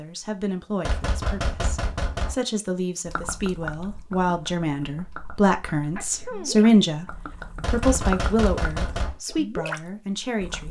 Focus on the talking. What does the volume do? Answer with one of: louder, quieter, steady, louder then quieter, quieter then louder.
louder then quieter.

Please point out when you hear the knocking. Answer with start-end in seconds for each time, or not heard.
0.8-2.4, 7.6-9.2.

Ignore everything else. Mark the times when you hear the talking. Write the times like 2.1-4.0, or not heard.
0.0-10.6.